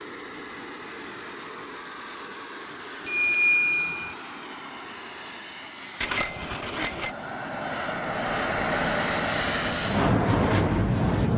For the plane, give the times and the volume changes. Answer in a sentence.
The plane can be heard from 0.0 to 11.3 s, getting louder.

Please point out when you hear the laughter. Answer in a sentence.
The laughter can't be heard in this clip.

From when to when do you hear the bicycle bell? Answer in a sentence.
You can hear the bicycle bell from 3.0 to 4.2 s and from 6.0 to 7.2 s.